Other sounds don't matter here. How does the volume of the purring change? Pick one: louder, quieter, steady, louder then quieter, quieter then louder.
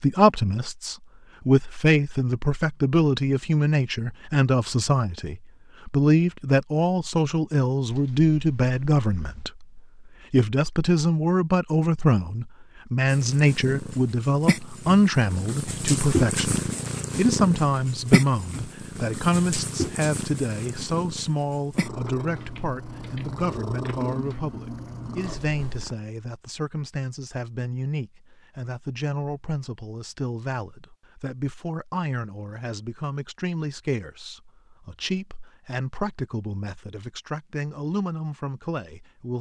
louder then quieter.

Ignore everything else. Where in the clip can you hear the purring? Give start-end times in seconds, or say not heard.
13.1-25.9.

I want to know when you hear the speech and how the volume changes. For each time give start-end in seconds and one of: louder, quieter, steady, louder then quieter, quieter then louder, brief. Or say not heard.
0.0-39.3 quieter.